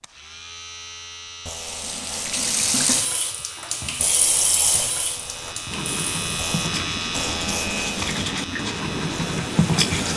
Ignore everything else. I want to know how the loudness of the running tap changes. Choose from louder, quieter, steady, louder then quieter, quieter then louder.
quieter.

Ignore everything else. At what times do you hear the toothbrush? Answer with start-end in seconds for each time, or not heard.
5.7-10.1.